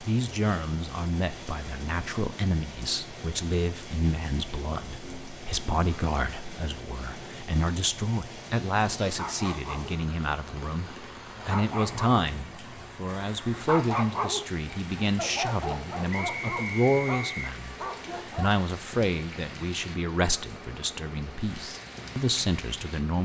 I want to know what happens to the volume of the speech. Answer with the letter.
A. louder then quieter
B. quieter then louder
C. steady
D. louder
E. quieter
C.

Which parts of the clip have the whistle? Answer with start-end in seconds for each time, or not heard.
16.1-17.4.